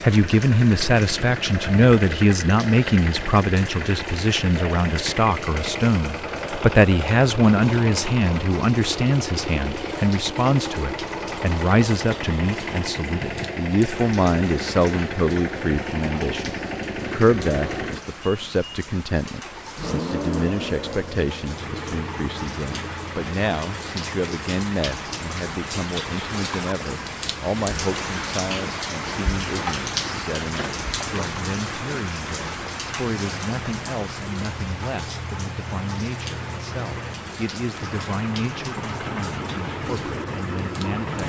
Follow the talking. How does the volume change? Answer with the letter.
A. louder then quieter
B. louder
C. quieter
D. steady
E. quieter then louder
C.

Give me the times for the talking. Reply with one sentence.
The talking can be heard from 0.0 to 41.2 s.